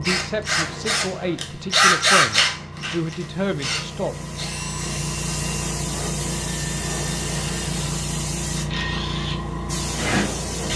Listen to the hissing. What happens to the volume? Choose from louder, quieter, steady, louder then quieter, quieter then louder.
louder.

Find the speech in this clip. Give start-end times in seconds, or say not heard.
0.0-4.2.